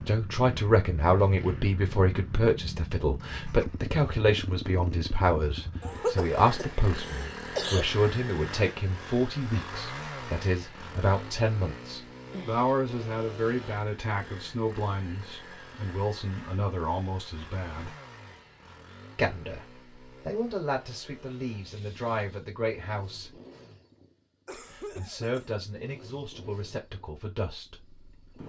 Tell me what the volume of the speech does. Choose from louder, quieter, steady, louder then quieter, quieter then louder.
quieter.